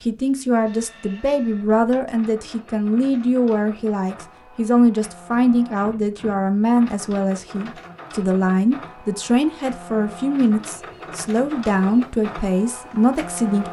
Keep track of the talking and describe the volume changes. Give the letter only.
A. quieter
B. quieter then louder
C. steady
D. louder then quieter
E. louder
C.